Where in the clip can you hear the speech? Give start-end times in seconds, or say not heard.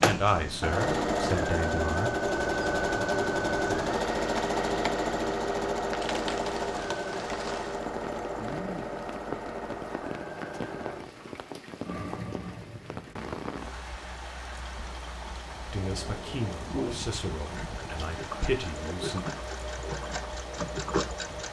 0.0-2.1, 15.7-19.2.